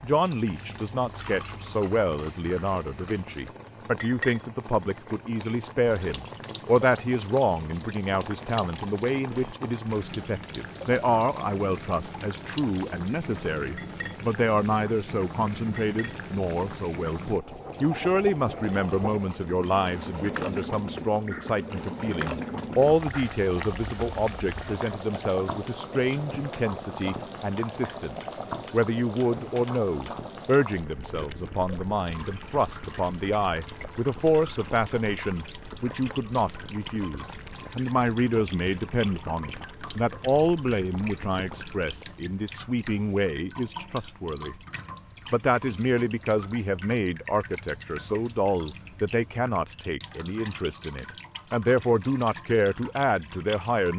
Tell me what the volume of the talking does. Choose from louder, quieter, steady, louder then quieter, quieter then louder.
steady.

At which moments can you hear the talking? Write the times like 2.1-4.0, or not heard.
0.0-44.5, 45.3-53.9.